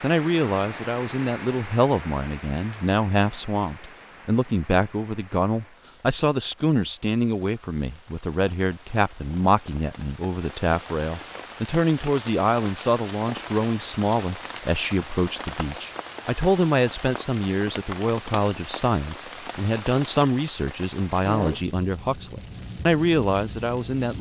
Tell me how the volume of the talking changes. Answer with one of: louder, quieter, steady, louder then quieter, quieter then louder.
steady.